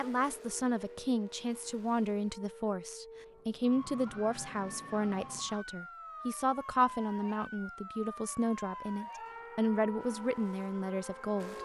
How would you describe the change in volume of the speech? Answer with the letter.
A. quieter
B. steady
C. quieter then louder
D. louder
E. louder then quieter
B.